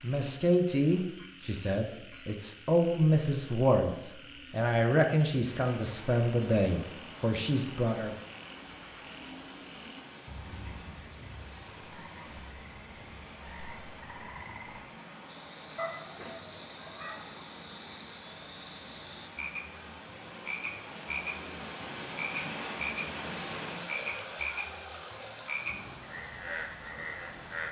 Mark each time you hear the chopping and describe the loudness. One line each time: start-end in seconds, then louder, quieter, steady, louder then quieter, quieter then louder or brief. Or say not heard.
not heard.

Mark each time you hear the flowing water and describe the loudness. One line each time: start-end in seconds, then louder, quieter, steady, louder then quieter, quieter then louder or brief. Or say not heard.
5.5-27.6 louder.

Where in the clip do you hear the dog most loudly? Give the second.
16 s.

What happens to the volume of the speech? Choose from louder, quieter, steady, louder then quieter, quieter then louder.
steady.